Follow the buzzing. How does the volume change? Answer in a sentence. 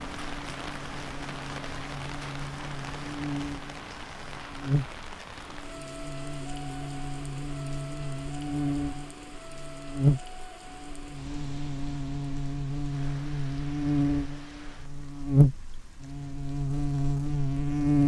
The loudness of the buzzing goes up.